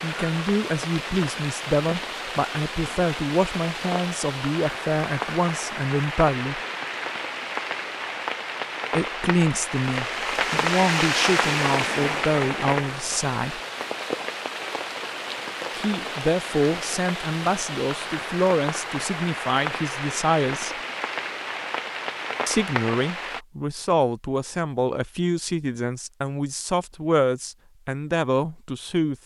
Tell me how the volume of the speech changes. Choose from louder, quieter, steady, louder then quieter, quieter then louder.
steady.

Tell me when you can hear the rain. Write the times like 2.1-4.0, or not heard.
0.0-23.4.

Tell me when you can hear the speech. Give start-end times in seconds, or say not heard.
0.0-6.6, 8.9-13.6, 15.8-20.8, 22.4-29.2.